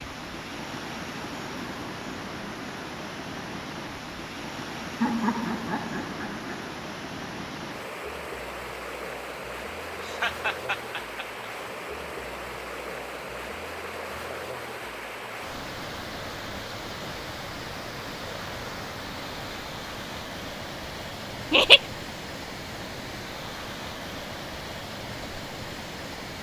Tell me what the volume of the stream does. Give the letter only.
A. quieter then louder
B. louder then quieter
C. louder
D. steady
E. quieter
D.